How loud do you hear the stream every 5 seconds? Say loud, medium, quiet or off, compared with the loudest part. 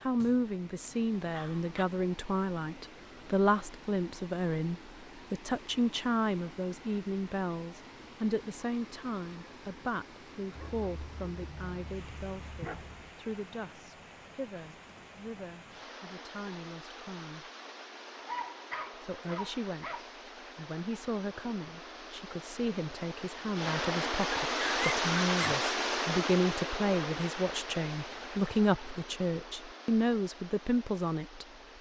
quiet, quiet, quiet, quiet, loud, loud, quiet.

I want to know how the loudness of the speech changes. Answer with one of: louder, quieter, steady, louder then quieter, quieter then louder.
quieter then louder.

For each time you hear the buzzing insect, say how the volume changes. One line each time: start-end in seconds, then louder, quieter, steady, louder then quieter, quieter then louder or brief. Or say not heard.
not heard.